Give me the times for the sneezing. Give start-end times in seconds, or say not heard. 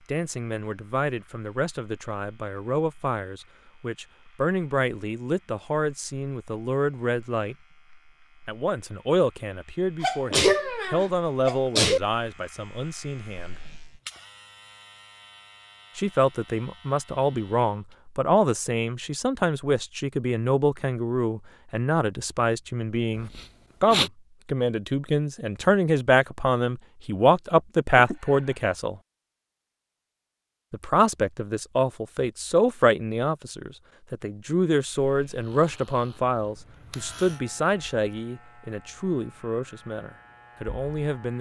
10.0-12.0, 23.1-24.1, 27.9-28.6.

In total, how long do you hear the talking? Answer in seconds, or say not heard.
36 s.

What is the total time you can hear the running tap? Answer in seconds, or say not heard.
not heard.